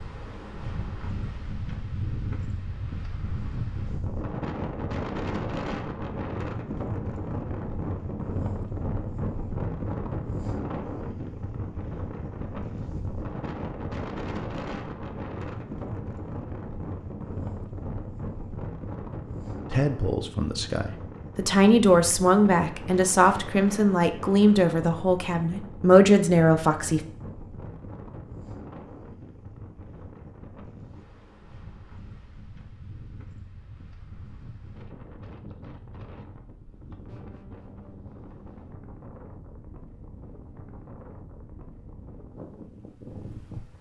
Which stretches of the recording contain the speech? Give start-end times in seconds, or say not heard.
19.7-27.0.